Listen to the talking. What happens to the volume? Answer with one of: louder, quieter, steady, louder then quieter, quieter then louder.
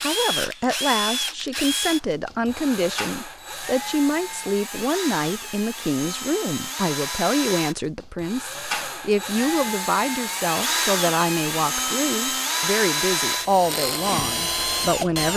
steady.